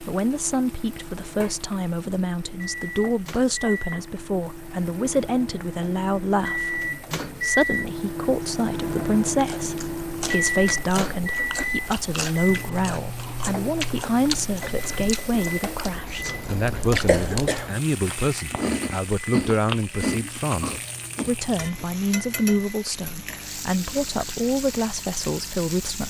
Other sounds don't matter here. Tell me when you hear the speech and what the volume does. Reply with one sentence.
The speech can be heard from 0.0 to 26.0 s, at a steady volume.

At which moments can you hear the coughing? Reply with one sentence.
The coughing can be heard from 16.6 to 17.7 s.